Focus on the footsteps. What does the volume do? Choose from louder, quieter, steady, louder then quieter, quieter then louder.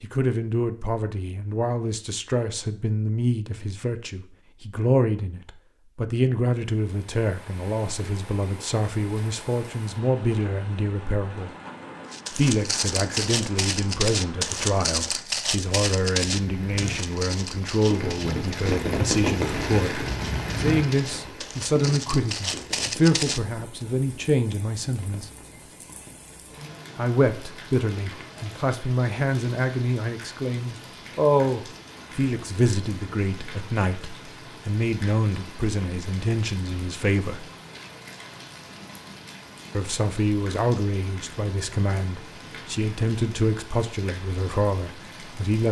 quieter then louder.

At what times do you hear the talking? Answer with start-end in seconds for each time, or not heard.
0.0-11.5, 12.3-25.3, 26.9-37.5, 39.7-45.6.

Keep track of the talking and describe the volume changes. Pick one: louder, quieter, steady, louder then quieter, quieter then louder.
steady.